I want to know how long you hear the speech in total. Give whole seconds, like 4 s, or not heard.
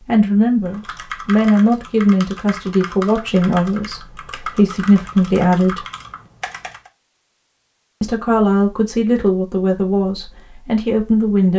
9 s.